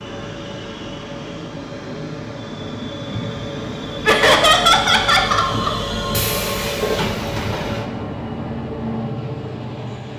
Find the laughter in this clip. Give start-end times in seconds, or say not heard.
4.0-5.7.